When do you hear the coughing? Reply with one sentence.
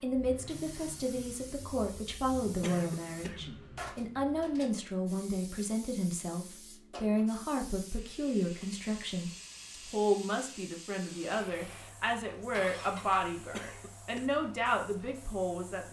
The coughing can be heard from 2.6 to 3.6 s and from 13.5 to 14.3 s.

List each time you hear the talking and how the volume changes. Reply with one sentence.
You can hear the talking from 0.0 to 15.8 s, at a steady volume.